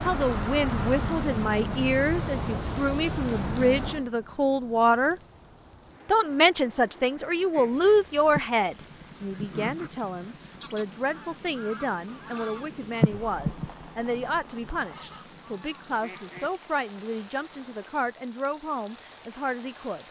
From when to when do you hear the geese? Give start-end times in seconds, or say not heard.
7.5-16.5.